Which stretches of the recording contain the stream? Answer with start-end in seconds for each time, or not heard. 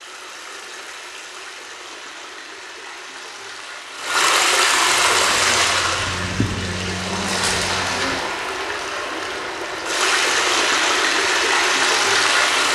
0.0-12.6.